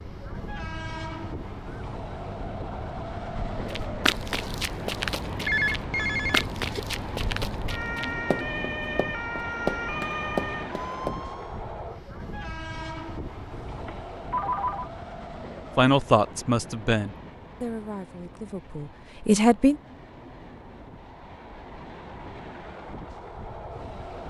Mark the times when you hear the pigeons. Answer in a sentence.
You can't hear the pigeons here.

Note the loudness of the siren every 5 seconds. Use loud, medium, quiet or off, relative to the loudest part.
medium, loud, loud, off, off.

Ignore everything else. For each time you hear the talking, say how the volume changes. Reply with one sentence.
You can hear the talking from 15.8 to 19.8 s, getting quieter then louder.